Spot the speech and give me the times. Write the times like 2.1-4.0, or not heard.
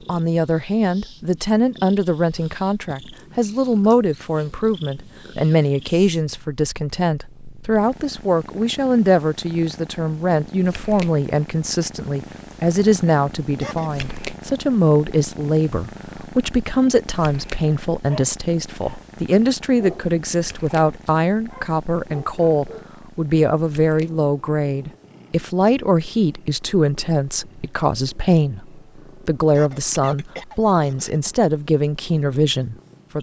0.1-33.1.